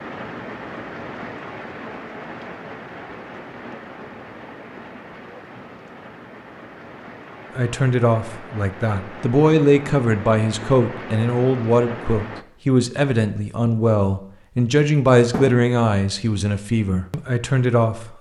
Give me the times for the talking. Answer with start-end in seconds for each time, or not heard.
7.5-18.1.